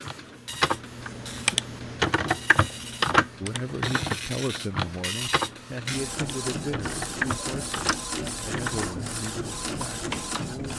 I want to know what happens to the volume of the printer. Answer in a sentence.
The volume of the printer goes up.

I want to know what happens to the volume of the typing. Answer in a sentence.
The volume of the typing goes down.